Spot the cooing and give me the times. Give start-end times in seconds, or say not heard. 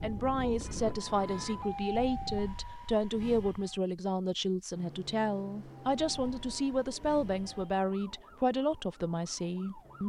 not heard.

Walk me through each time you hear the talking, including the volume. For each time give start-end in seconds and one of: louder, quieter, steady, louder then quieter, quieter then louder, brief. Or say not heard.
0.0-10.0 steady.